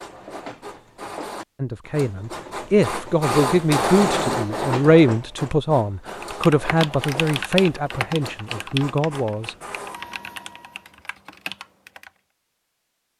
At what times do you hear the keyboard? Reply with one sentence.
The keyboard can be heard from 6.2 to 12.1 s.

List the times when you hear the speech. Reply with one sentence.
You can hear the speech from 1.6 to 9.6 s.